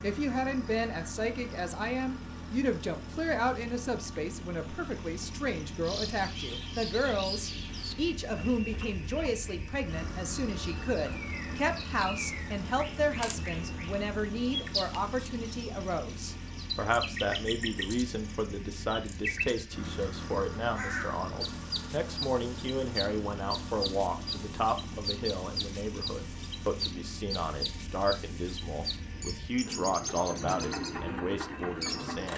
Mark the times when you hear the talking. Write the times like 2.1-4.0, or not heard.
0.0-32.3.